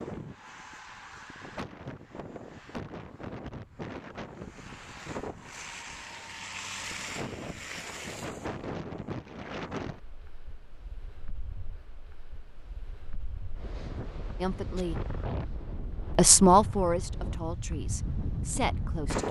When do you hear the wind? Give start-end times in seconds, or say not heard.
0.0-19.2.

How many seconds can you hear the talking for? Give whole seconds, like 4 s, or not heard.
4 s.